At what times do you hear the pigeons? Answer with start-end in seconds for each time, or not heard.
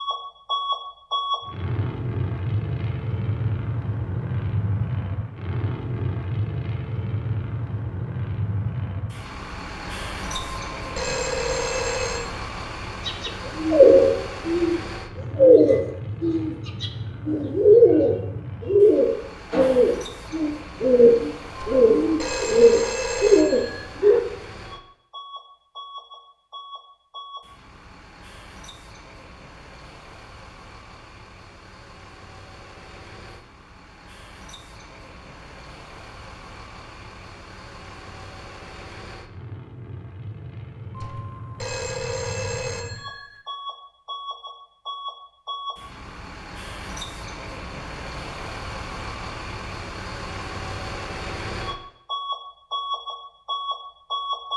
13.1-14.8, 15.3-24.2.